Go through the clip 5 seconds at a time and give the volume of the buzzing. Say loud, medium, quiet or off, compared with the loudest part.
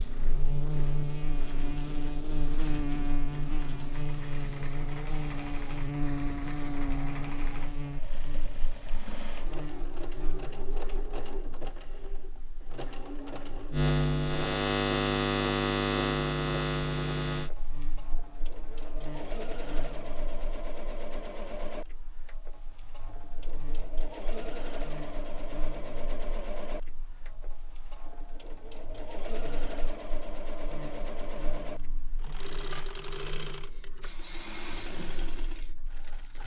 medium, medium, loud, loud, quiet, quiet, quiet, quiet.